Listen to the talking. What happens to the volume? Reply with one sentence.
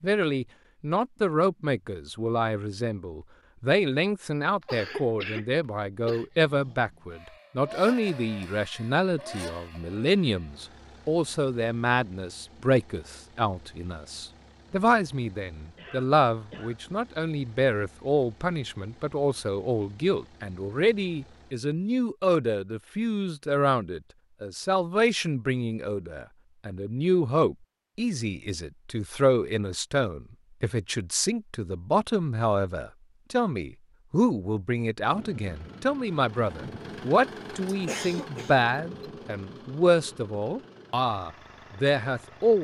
The loudness of the talking stays about the same.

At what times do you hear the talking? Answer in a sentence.
The talking can be heard from 0.0 to 42.5 s.